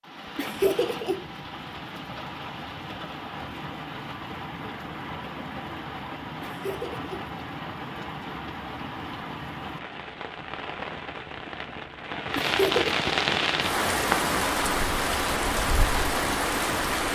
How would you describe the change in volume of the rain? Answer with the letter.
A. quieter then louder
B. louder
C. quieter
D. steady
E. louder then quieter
B.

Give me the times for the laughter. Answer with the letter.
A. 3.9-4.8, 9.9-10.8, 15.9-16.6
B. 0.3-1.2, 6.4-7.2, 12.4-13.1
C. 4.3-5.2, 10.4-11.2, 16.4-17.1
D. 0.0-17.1
B.